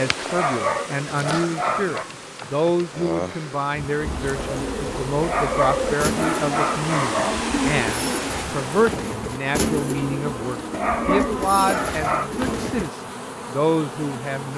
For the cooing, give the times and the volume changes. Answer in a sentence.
You can hear the cooing from 4.0 to 12.9 s, at a steady volume.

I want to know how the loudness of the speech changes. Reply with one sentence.
The loudness of the speech stays about the same.